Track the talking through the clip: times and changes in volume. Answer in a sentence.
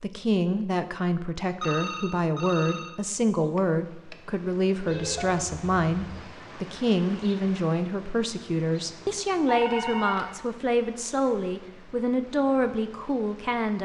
The talking can be heard from 0.0 to 13.8 s, at a steady volume.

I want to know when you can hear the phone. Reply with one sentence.
You can hear the phone from 1.6 to 3.0 s, from 4.8 to 6.2 s and from 9.4 to 10.3 s.